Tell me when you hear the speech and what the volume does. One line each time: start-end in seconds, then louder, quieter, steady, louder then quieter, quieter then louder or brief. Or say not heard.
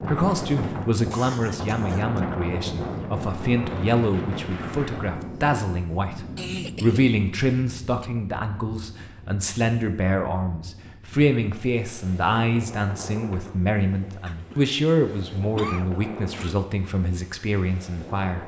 0.0-18.4 steady.